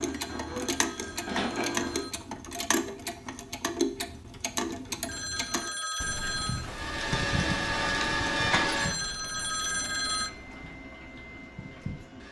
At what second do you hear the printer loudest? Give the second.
8 s.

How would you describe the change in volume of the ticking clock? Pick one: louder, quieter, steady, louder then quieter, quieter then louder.
quieter.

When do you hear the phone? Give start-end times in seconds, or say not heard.
0.1-2.1, 5.0-6.7, 8.7-10.3.